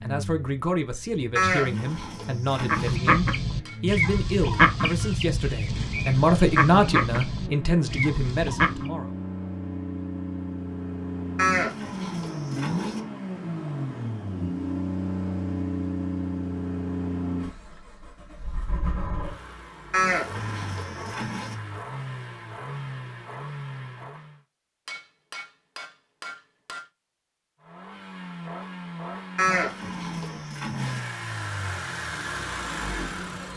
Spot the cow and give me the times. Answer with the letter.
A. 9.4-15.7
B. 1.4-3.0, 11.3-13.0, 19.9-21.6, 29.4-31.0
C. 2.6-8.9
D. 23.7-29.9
B.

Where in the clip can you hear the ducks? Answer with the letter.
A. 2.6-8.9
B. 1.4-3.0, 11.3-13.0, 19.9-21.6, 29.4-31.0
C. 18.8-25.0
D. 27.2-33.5
A.